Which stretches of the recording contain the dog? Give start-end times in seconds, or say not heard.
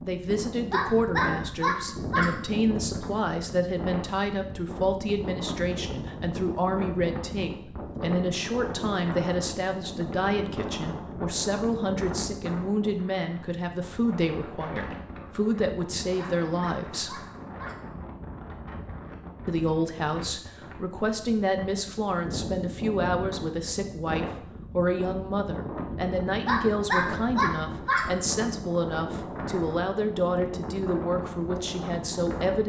0.7-2.3, 16.1-17.8, 26.4-28.1.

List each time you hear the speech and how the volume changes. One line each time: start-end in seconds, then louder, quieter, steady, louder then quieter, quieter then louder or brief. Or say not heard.
0.1-17.2 steady
19.4-32.6 steady.